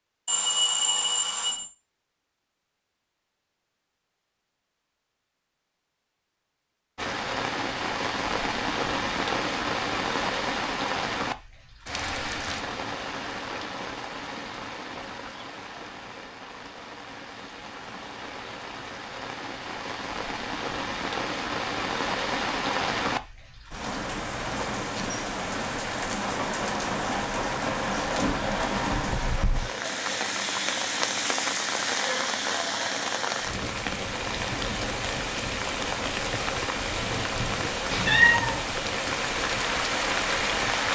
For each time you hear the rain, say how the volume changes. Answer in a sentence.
The rain can be heard from 7.0 to 40.9 s, getting quieter then louder.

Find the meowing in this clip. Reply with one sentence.
You can hear the meowing from 37.9 to 38.6 s.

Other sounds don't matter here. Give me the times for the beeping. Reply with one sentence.
The beeping can be heard from 0.2 to 1.6 s and from 28.2 to 29.1 s.